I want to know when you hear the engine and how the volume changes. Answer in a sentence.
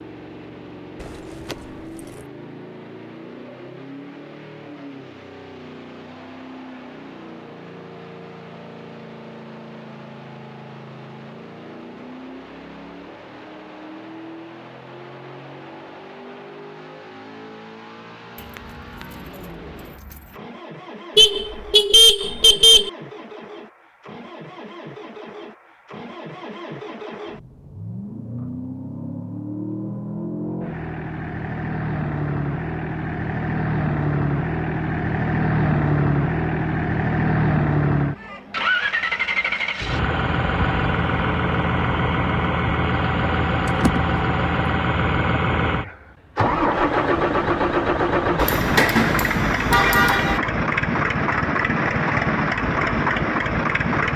You can hear the engine from 0.0 to 54.1 s, getting louder.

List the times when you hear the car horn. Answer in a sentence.
You can hear the car horn from 21.1 to 22.9 s and from 48.4 to 50.4 s.